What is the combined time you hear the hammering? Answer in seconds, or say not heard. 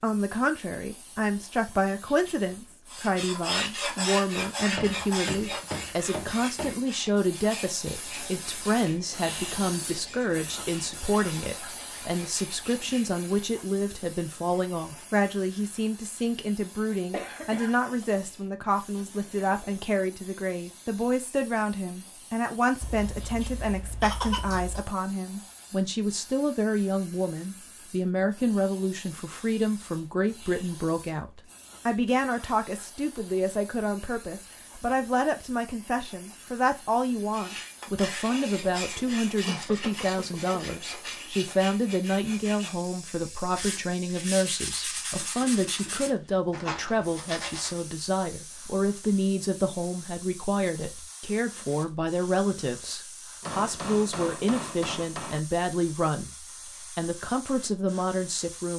4 s.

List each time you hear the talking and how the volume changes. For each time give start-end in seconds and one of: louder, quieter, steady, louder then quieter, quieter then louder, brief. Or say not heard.
0.0-58.7 steady.